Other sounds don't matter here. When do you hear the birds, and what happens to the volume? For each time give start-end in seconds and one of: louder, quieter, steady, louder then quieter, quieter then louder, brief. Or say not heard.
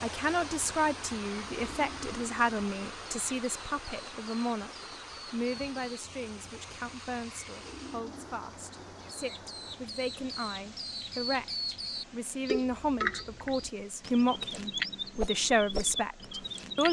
0.0-16.8 louder.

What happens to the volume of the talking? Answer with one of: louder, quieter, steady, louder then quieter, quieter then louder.
quieter then louder.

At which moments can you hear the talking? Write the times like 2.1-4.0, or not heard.
0.0-4.7, 5.3-16.8.